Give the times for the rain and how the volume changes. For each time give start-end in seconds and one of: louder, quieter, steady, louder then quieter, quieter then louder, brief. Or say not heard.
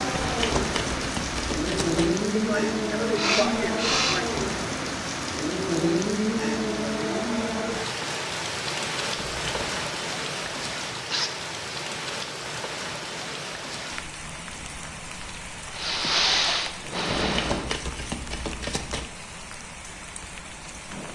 0.0-21.1 quieter.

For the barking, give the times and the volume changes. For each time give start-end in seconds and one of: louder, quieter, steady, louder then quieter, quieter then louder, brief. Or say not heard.
not heard.